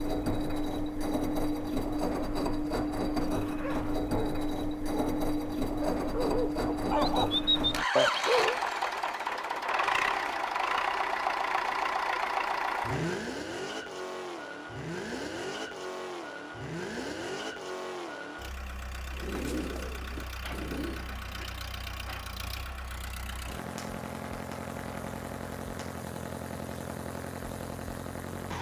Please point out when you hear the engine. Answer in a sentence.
You can hear the engine from 0.0 to 28.5 s.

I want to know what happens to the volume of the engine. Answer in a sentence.
The volume of the engine goes down.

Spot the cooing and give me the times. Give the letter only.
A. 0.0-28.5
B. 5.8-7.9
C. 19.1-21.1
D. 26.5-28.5
C.